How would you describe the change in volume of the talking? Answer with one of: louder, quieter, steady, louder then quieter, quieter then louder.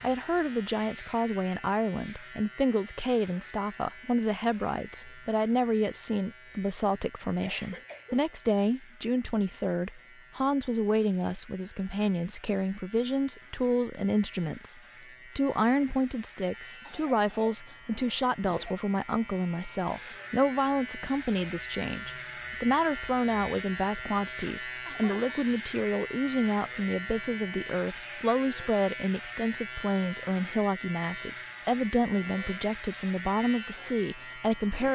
steady.